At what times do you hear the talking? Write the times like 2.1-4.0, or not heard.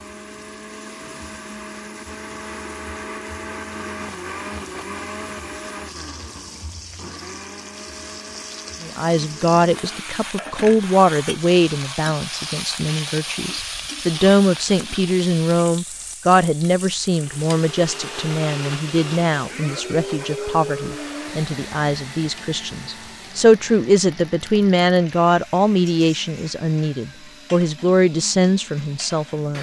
8.8-29.5.